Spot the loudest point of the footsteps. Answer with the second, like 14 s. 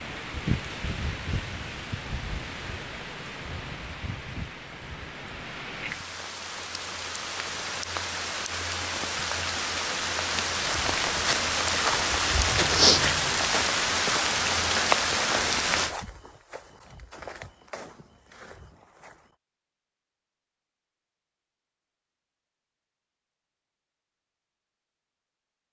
13 s.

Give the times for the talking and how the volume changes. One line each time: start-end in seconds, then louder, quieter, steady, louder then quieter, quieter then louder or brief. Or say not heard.
not heard.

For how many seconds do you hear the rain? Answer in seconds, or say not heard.
16 s.